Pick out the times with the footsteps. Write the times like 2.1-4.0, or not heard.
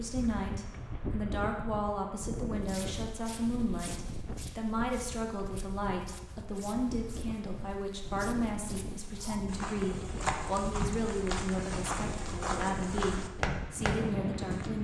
2.5-14.7.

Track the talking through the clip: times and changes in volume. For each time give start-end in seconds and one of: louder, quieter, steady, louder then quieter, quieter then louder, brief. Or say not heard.
0.0-14.7 steady.